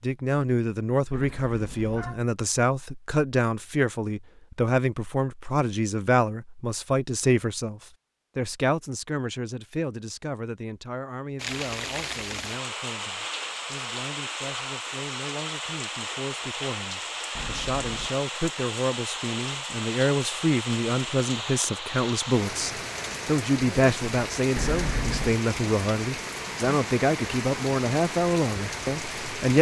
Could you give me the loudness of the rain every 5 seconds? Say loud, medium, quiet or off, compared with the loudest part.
off, off, loud, loud, loud, loud.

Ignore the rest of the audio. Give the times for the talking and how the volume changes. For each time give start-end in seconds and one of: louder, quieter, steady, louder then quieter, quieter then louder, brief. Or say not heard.
0.0-29.5 quieter then louder.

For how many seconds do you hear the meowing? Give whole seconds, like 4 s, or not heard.
3 s.